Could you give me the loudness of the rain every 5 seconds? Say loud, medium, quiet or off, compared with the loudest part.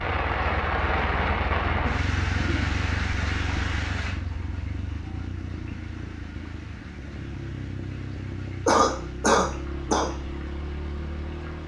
loud, quiet, quiet.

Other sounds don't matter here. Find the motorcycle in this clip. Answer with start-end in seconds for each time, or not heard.
0.0-11.6.